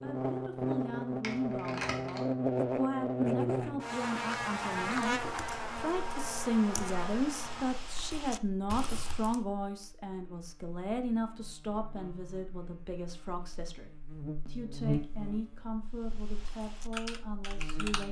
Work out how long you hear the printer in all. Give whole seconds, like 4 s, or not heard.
not heard.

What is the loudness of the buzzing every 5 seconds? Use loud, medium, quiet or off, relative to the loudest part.
loud, medium, medium, quiet.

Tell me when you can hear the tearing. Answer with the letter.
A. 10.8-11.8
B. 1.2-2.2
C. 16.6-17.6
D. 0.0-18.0
B.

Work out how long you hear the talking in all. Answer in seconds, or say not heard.
18 s.